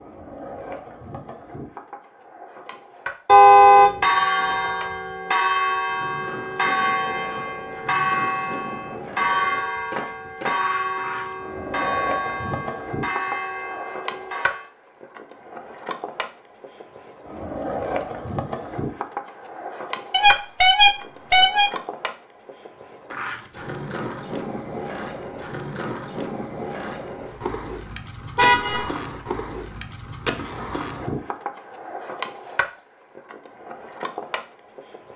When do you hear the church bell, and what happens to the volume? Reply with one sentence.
You can hear the church bell from 3.6 to 14.7 s, getting quieter.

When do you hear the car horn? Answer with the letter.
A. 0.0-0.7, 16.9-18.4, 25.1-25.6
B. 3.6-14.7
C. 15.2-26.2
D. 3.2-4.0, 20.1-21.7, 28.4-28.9
D.